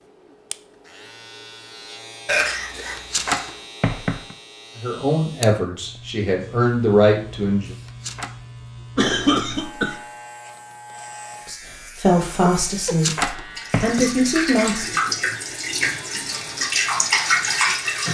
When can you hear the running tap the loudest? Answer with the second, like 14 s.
17 s.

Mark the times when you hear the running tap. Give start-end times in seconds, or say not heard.
13.6-18.0.